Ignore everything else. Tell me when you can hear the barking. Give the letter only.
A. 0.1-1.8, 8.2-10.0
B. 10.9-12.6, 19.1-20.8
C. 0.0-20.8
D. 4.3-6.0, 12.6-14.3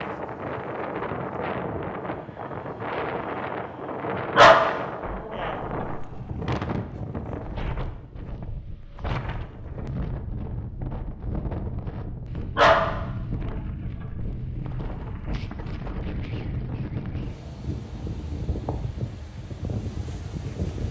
D.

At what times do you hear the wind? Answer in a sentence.
You can hear the wind from 0.0 to 20.8 s.